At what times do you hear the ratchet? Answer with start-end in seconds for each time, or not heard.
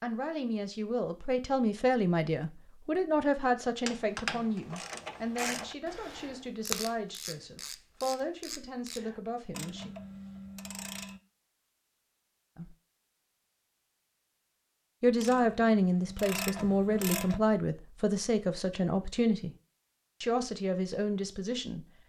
3.9-11.2, 15.2-17.4.